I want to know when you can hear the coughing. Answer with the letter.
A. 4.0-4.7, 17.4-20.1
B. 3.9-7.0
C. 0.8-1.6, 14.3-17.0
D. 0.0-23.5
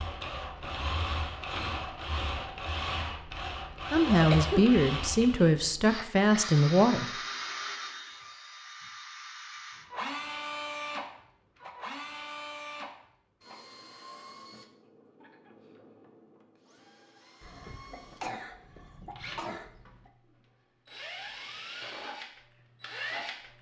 A.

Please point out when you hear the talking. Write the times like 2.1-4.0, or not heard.
3.9-7.0.